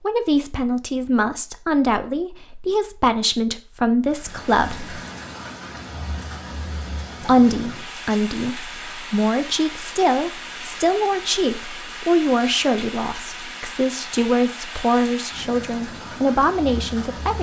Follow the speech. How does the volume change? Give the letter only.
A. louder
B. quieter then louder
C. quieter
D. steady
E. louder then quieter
D.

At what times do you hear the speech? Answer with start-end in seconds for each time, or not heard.
0.0-5.0, 7.2-17.3.